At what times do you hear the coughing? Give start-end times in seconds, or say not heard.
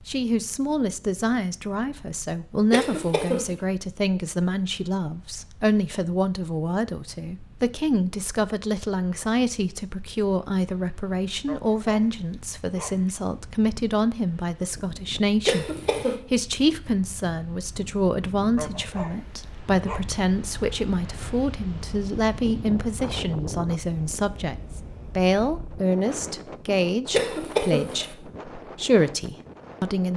2.7-3.5, 15.4-16.2, 27.1-28.1.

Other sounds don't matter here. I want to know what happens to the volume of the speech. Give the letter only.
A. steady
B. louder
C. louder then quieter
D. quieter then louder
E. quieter
A.